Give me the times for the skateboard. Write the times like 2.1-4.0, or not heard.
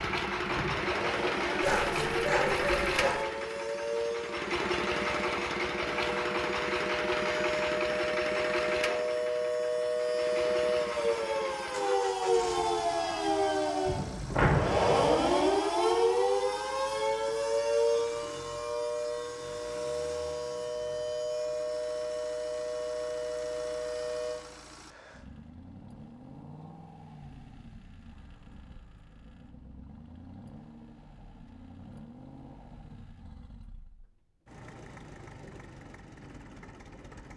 not heard.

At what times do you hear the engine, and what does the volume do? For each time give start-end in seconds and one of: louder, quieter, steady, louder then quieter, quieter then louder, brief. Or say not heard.
0.0-37.3 quieter.